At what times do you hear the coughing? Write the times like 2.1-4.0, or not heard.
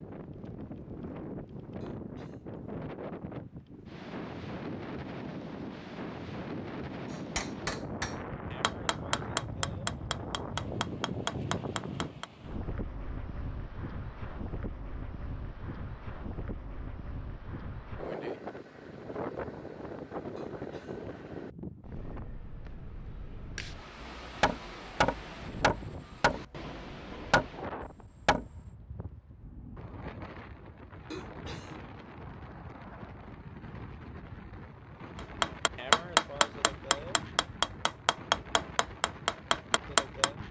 1.8-2.5, 20.4-21.1, 31.1-31.8.